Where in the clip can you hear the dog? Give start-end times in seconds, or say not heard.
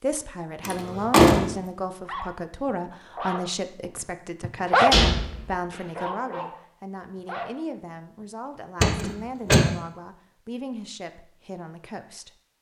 2.0-5.0, 6.0-8.6.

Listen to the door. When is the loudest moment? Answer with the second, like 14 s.
1 s.